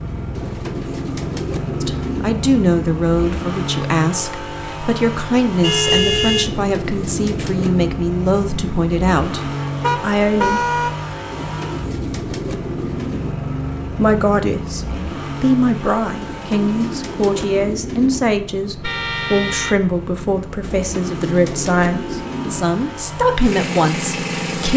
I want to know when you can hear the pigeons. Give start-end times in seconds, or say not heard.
0.3-2.4, 6.5-7.9, 11.3-13.3, 16.2-18.2, 20.6-22.6.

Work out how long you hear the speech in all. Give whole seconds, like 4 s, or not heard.
20 s.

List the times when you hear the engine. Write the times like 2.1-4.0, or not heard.
0.0-24.7.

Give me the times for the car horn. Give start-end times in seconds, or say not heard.
5.6-6.5, 9.8-10.9, 18.8-19.9.